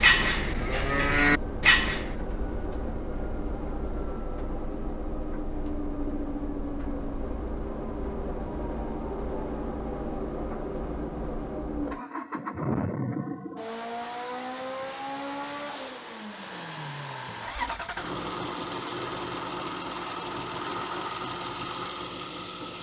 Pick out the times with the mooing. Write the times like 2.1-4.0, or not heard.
0.0-2.0.